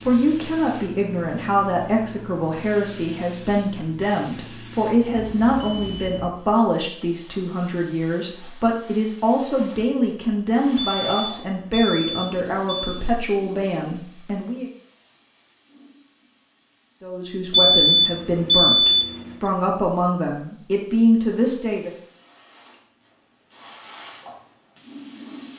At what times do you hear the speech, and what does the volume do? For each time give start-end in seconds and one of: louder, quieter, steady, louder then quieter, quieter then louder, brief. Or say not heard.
0.0-14.7 steady
17.0-21.9 louder.